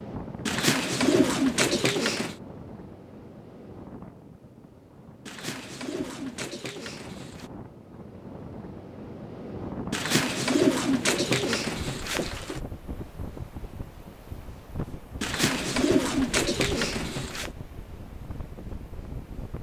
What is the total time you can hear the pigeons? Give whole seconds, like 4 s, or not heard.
9 s.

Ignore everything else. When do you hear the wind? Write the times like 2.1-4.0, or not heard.
0.0-19.5.